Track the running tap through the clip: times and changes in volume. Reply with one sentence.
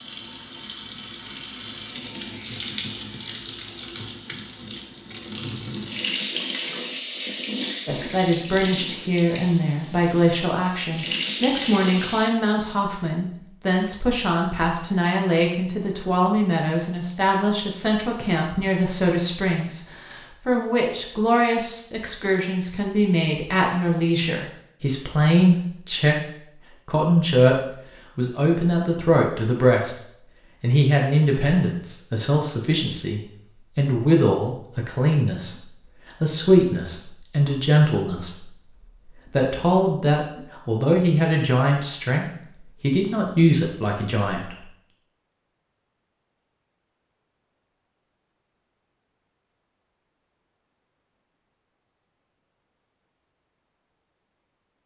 The running tap can be heard from 0.0 to 12.3 s, at a steady volume.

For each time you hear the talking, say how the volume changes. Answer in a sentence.
You can hear the talking from 7.8 to 44.6 s, at a steady volume.